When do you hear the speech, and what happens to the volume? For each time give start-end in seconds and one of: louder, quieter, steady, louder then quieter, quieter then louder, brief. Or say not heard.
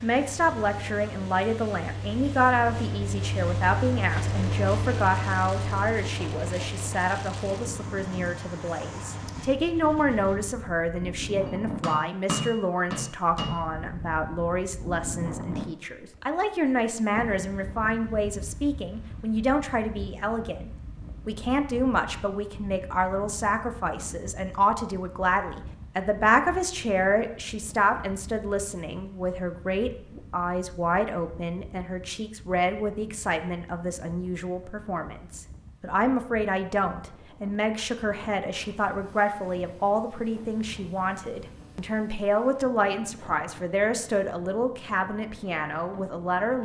0.0-46.5 steady.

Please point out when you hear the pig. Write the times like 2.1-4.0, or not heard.
not heard.